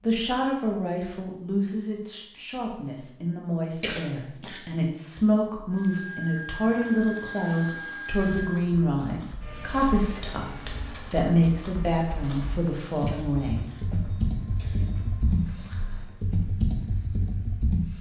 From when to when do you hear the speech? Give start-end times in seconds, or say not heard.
0.0-13.7.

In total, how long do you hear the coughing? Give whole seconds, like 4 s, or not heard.
3 s.